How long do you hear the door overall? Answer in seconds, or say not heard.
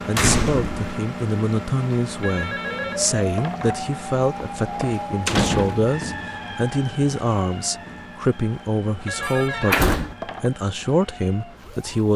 3 s.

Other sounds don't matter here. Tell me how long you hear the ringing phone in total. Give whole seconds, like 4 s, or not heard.
3 s.